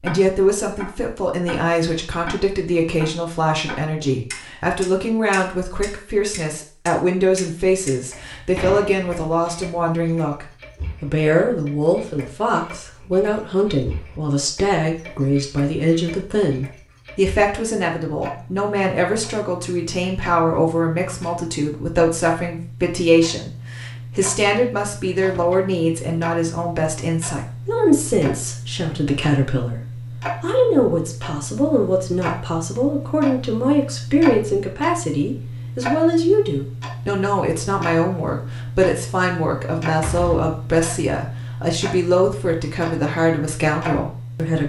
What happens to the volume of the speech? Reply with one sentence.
The loudness of the speech stays about the same.